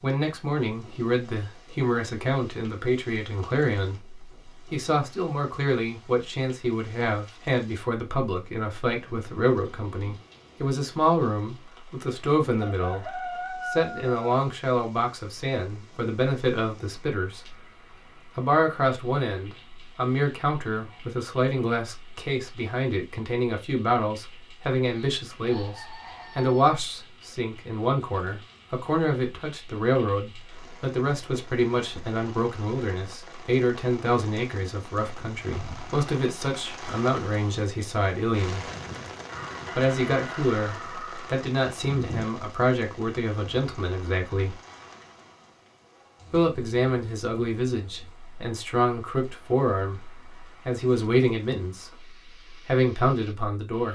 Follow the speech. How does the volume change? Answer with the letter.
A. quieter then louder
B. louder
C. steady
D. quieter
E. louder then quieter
C.